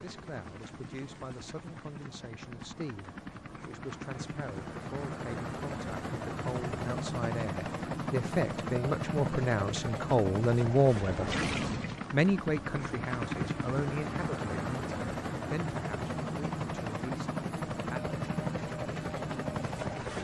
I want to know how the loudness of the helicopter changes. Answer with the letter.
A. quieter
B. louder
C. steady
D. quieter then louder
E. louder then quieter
B.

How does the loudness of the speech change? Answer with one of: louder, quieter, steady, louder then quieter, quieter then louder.
louder then quieter.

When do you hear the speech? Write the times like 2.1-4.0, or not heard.
0.0-11.3, 12.1-18.1.